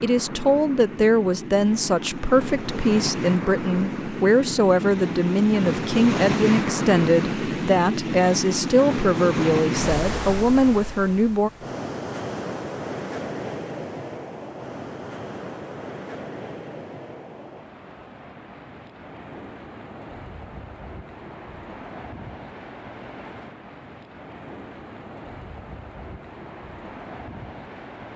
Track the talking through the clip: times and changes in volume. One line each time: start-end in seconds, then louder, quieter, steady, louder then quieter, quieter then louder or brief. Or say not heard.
0.0-11.5 steady.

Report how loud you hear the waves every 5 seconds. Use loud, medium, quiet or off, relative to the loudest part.
medium, loud, medium, quiet, quiet, quiet.